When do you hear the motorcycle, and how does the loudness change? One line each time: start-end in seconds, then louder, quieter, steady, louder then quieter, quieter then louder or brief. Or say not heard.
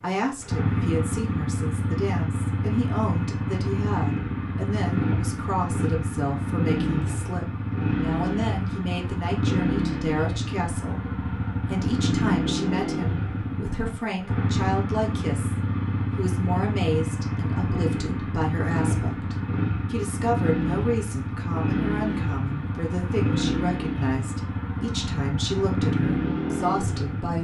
0.0-27.3 steady.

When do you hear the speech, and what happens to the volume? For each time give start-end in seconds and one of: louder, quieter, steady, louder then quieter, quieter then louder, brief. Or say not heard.
0.0-15.6 steady
16.1-27.3 steady.